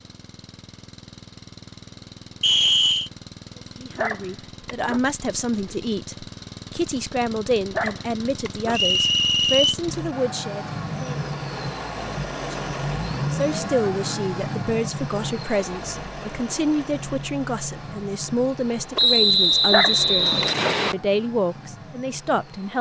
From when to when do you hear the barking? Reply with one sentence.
You can hear the barking from 3.9 to 5.0 s, from 7.7 to 8.8 s and from 19.6 to 20.8 s.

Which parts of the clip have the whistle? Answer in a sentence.
The whistle can be heard from 2.4 to 3.1 s, from 8.7 to 9.8 s and from 18.9 to 20.9 s.